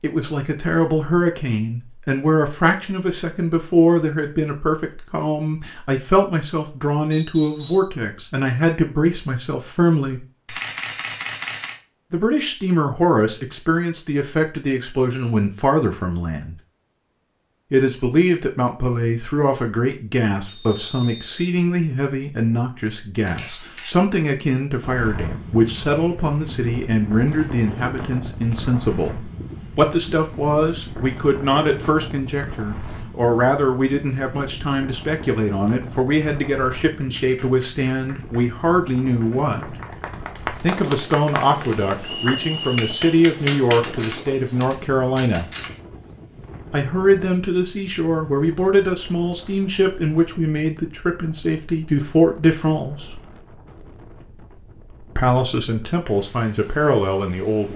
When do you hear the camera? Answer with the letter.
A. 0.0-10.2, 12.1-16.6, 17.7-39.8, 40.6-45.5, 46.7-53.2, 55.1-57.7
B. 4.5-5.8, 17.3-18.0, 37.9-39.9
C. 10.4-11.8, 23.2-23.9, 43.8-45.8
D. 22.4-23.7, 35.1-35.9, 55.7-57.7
C.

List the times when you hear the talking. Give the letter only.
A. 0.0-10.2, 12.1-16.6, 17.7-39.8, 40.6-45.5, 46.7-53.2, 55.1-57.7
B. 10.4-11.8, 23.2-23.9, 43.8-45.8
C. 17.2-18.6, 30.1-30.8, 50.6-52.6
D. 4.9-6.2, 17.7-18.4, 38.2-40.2
A.